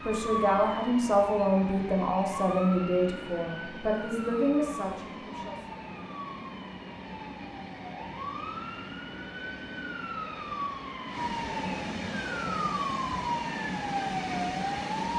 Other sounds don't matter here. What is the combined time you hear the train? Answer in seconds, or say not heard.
15 s.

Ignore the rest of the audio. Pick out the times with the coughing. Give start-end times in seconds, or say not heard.
not heard.